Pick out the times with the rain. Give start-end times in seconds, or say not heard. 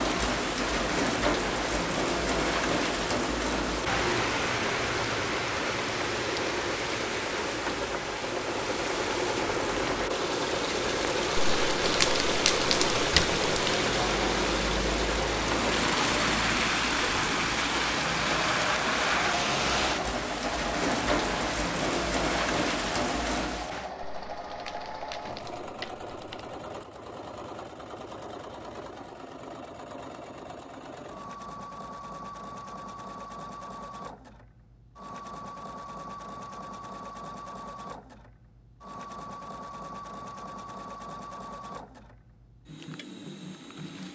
0.0-23.9.